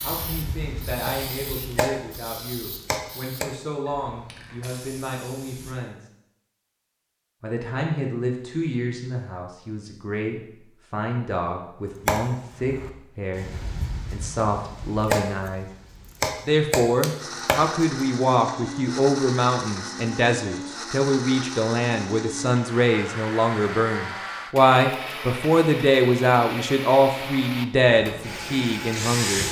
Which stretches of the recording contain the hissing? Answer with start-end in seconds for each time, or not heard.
0.0-5.8, 27.8-29.4.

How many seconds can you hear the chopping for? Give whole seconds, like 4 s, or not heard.
9 s.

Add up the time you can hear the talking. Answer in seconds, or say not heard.
27 s.